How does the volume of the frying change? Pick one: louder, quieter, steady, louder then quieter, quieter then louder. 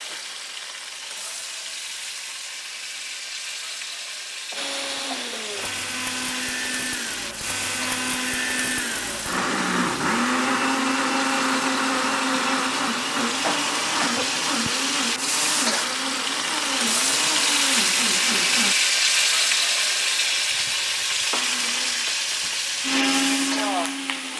louder.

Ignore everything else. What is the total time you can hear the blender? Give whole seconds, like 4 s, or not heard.
17 s.